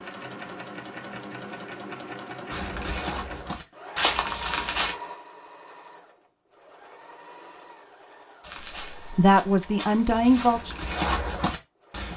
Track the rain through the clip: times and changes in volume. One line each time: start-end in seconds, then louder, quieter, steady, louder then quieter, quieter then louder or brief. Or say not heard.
not heard.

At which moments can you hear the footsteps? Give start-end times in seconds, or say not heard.
2.5-5.0, 8.4-12.1.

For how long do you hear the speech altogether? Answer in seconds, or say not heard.
2 s.